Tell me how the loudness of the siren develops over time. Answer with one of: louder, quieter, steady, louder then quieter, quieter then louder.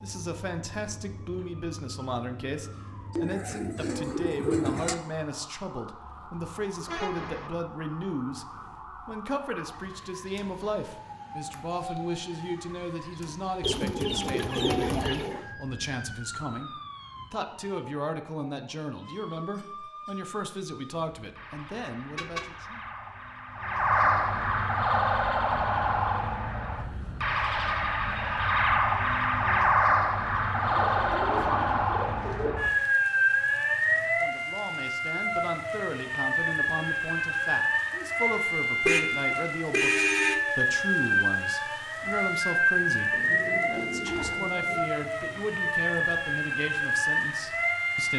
louder.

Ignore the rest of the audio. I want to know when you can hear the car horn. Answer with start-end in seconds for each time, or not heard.
6.8-7.5, 22.1-22.6, 38.9-40.5.